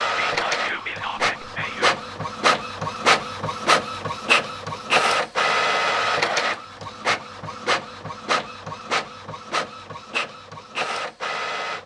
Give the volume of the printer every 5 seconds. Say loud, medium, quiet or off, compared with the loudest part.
loud, loud, medium.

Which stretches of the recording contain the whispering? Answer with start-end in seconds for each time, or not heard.
0.1-1.9.